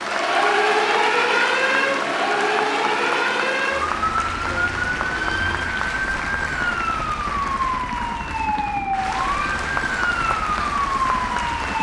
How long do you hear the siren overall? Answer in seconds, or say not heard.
12 s.